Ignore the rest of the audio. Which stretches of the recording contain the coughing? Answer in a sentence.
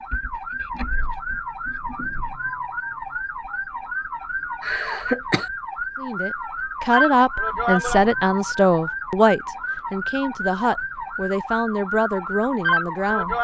You can hear the coughing from 4.6 to 5.5 s.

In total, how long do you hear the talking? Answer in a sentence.
The talking can be heard for 7 seconds in total.